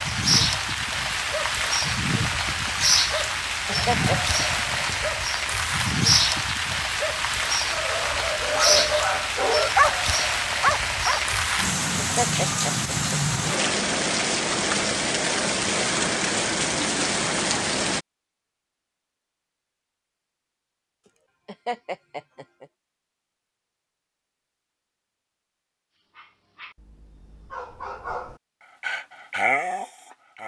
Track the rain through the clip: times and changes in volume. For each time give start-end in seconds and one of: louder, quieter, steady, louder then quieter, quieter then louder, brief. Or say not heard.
0.0-18.0 steady.